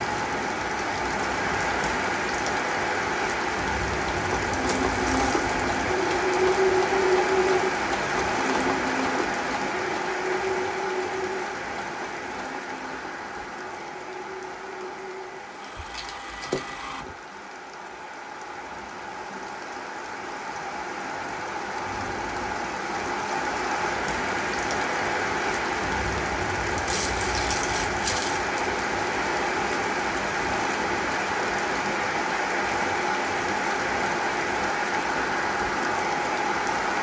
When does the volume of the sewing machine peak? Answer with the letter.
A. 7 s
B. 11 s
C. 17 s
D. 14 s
A.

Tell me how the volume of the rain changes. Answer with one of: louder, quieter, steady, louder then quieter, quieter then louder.
quieter then louder.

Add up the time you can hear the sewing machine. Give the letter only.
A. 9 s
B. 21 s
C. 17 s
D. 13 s
D.